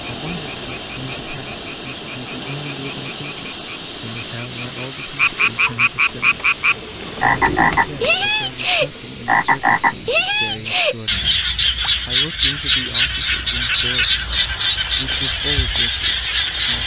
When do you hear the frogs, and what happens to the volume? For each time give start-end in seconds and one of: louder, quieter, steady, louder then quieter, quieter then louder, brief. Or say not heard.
0.1-16.8 louder.